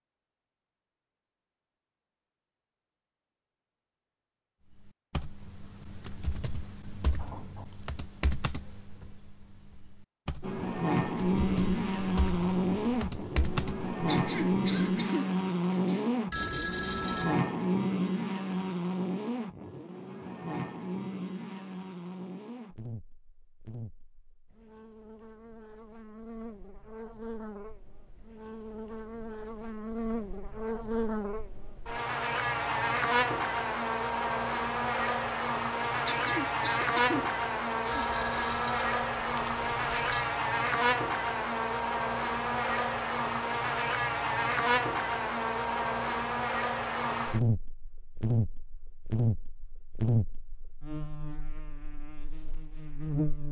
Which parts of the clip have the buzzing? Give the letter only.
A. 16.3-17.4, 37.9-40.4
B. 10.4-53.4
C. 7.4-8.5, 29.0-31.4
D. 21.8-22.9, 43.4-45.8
B.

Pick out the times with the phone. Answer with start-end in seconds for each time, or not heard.
16.3-17.4, 37.9-40.4.